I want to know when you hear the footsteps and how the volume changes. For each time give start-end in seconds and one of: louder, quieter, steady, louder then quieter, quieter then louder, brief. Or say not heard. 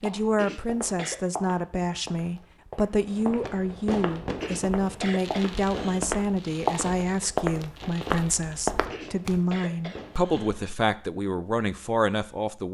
0.0-9.4 louder.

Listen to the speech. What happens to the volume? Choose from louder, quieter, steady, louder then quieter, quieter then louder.
steady.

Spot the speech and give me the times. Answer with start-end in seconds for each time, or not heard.
0.0-12.6.